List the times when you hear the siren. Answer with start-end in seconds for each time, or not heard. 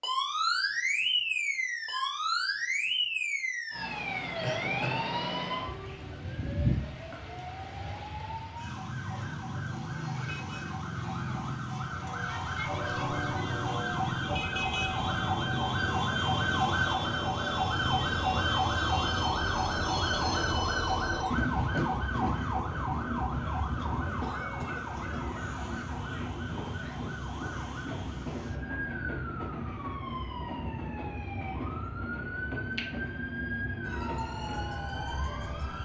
0.0-35.7.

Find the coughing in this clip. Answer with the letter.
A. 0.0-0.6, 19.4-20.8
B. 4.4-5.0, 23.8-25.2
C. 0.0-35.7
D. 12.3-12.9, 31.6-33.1
B.